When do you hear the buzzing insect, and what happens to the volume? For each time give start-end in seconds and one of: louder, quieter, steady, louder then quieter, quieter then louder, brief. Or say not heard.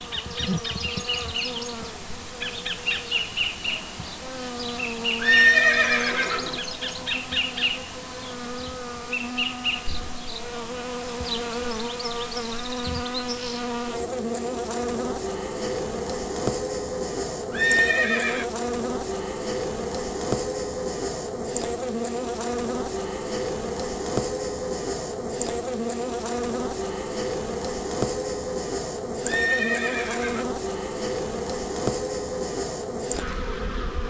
0.0-34.0 steady.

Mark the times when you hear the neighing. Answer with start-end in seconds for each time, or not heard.
5.2-6.6, 17.5-18.4, 29.2-30.4.